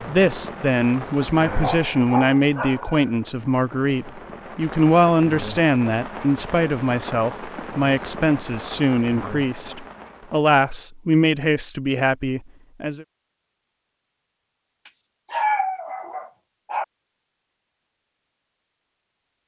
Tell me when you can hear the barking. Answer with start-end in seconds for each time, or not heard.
1.4-3.1, 14.8-16.9.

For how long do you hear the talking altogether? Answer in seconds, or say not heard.
13 s.